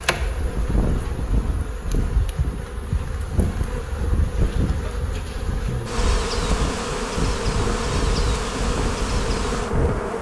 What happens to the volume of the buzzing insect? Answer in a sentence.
The volume of the buzzing insect goes up.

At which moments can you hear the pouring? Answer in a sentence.
You can't hear the pouring here.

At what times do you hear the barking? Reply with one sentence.
You can't hear the barking here.